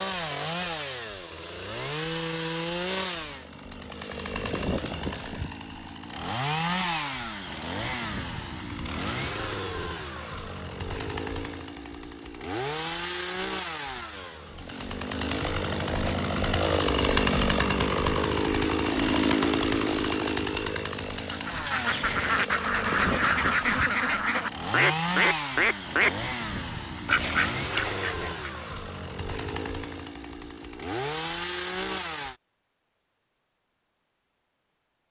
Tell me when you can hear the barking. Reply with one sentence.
The barking can't be heard in this clip.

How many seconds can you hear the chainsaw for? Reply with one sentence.
You can hear the chainsaw for 32 seconds altogether.